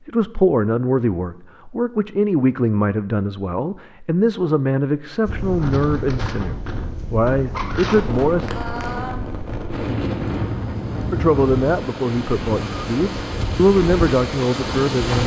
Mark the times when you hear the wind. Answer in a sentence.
You can hear the wind from 5.2 to 15.2 s.